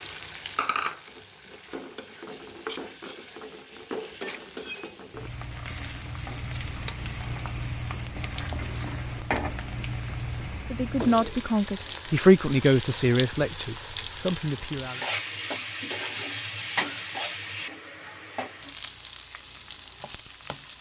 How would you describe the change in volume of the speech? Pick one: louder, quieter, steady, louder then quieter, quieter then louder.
louder then quieter.